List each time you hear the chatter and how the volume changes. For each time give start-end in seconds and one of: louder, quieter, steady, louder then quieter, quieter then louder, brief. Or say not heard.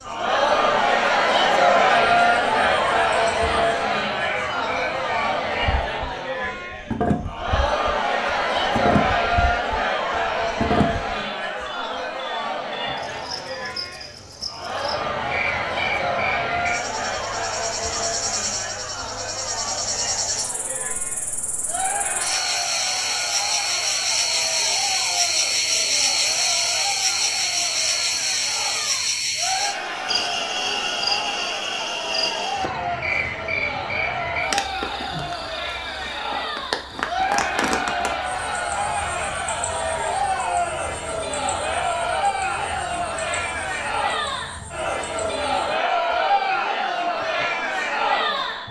0.0-48.6 quieter then louder.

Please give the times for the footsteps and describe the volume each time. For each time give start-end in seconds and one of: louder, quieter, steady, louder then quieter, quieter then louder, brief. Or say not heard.
not heard.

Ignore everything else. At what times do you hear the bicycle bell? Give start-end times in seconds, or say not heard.
not heard.